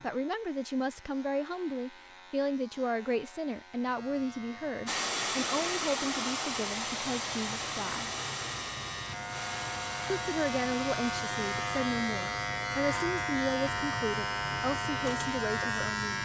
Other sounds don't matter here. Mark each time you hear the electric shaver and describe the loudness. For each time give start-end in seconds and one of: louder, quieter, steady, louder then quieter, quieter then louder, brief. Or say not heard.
0.0-16.1 louder.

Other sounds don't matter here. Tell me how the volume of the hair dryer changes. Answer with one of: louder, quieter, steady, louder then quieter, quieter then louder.
quieter.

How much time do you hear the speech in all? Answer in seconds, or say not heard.
14 s.